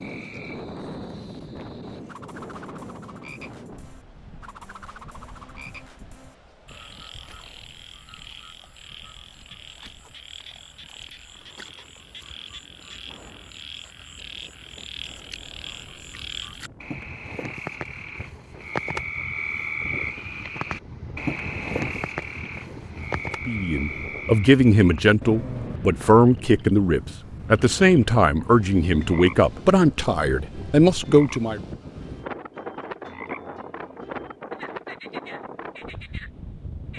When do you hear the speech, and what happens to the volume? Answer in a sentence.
The speech can be heard from 23.4 to 31.6 s, at a steady volume.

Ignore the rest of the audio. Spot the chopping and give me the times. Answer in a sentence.
You can't hear the chopping here.